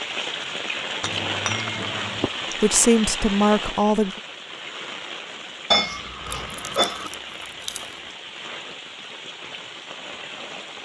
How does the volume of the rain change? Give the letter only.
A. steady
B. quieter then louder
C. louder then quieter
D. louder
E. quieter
E.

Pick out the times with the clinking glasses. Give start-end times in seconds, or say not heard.
1.0-2.3, 5.7-7.1.